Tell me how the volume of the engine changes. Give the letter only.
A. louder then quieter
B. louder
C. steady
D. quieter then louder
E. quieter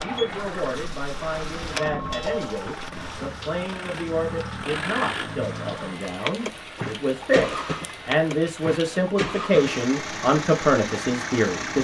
B.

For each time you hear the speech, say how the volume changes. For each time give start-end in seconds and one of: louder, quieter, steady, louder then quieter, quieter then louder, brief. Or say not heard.
0.0-11.7 louder.